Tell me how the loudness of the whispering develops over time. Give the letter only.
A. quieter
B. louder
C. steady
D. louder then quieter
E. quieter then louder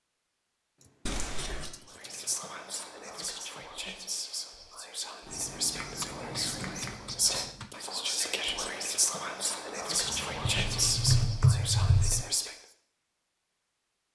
B.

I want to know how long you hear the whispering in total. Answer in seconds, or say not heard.
11 s.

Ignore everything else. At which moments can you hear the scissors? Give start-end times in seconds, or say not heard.
1.1-1.7, 5.2-7.0, 10.0-11.3.